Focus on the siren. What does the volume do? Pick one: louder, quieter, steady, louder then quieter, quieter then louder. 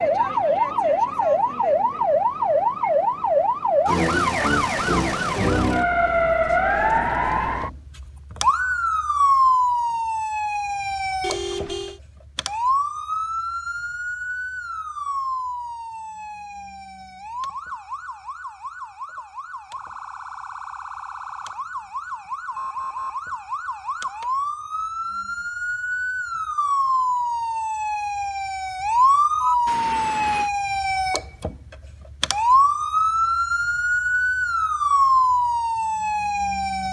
quieter then louder.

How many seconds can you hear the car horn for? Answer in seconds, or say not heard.
2 s.